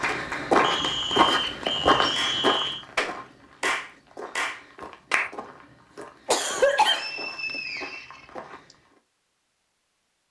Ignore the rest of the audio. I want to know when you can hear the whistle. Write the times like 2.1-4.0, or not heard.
0.6-2.9, 6.8-8.8.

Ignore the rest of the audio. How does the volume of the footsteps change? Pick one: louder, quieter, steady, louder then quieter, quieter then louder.
quieter.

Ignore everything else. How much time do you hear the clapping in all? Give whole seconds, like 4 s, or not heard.
5 s.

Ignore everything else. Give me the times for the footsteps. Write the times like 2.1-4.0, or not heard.
0.0-9.0.